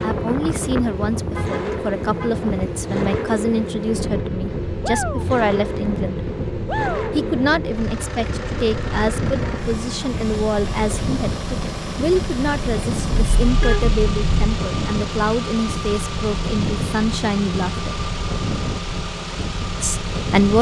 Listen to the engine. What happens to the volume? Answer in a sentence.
The volume of the engine stays about the same.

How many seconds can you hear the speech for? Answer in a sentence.
You can hear the speech for 18 seconds altogether.